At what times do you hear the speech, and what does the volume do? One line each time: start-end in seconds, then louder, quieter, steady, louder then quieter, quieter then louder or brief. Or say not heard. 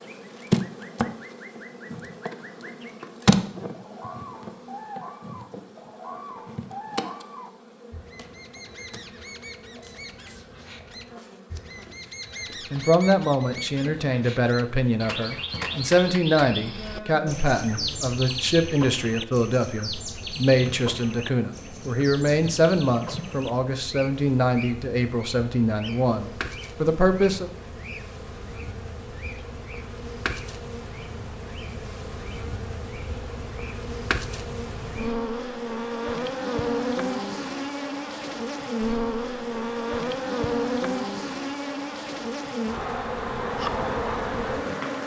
12.7-27.5 steady.